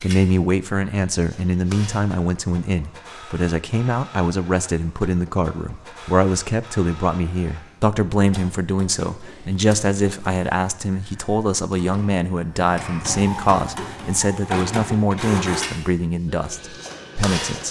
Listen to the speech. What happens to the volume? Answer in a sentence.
The volume of the speech stays about the same.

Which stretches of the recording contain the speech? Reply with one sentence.
The speech can be heard from 0.0 to 17.6 s.